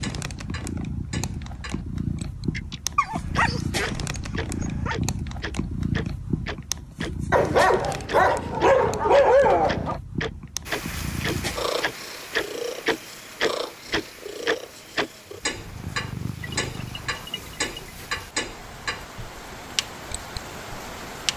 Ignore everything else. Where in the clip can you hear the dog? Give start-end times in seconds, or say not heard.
3.0-5.0, 7.3-10.0, 16.4-17.9.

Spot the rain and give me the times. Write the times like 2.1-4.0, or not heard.
10.7-21.3.